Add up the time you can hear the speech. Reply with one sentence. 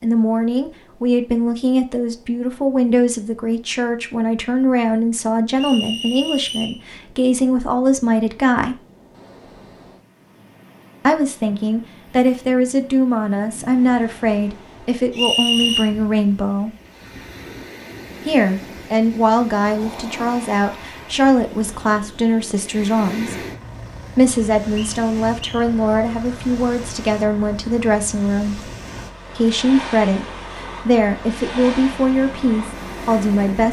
You can hear the speech for 28 seconds altogether.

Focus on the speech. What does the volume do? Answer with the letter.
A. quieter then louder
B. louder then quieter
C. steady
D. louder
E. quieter
C.